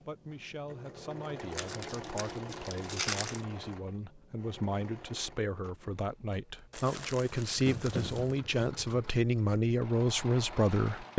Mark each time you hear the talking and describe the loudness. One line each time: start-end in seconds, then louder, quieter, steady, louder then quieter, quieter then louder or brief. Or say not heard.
0.1-11.1 louder.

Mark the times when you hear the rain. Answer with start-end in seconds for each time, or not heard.
not heard.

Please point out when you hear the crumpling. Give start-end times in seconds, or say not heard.
1.4-3.5, 6.7-8.4.